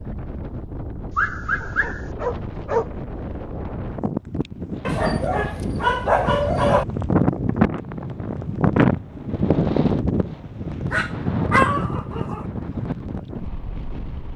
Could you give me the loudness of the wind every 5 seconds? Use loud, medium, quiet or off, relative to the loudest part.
medium, loud, medium.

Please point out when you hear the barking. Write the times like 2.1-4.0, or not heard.
1.1-2.9, 4.8-6.8, 10.9-12.4.